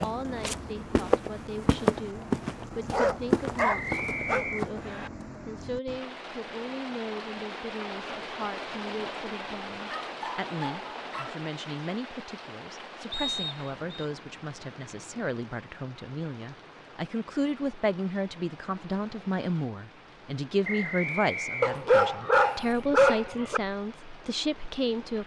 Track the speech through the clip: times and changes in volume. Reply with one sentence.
The speech can be heard from 0.0 to 25.2 s, getting louder.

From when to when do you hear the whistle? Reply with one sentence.
The whistle can be heard from 3.5 to 5.1 s, from 13.1 to 14.1 s and from 20.6 to 21.8 s.